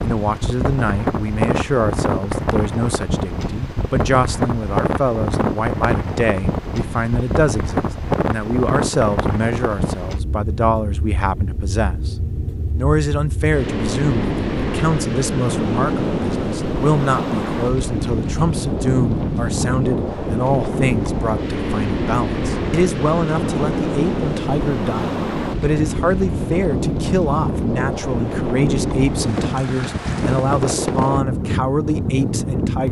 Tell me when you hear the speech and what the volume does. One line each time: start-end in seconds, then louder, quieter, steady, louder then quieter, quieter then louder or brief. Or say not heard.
0.0-12.2 steady
12.8-32.8 steady.